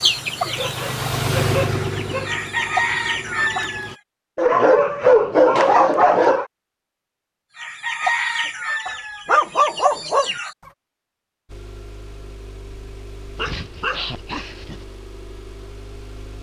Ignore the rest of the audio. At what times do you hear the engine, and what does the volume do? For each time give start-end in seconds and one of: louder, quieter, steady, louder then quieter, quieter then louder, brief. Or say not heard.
0.0-4.0 louder then quieter
11.4-16.3 steady.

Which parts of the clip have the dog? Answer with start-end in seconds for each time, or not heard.
0.4-2.3, 4.3-6.5, 8.8-10.3, 13.3-14.8.